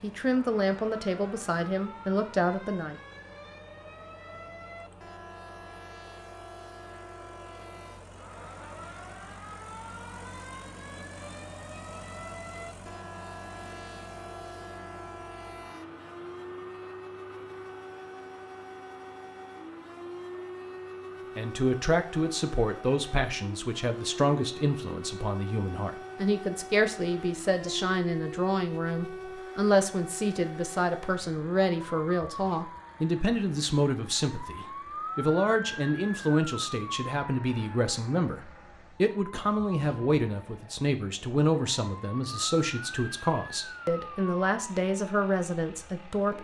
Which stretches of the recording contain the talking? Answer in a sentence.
You can hear the talking from 0.0 to 3.0 s and from 21.4 to 46.3 s.